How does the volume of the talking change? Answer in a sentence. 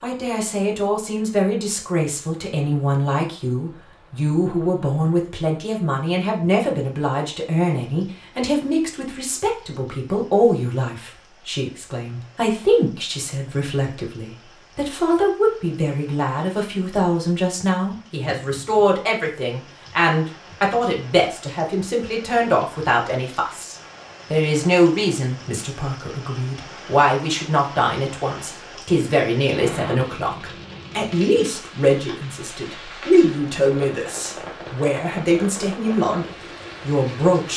The loudness of the talking stays about the same.